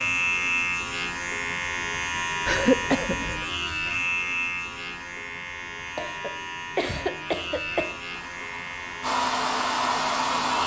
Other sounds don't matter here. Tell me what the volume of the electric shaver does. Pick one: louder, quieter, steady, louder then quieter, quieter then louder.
quieter.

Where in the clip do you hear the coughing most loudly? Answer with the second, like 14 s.
3 s.